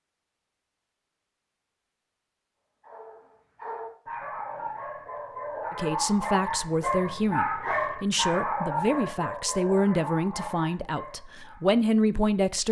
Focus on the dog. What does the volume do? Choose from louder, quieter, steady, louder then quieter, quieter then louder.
louder then quieter.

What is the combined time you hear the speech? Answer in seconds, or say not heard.
7 s.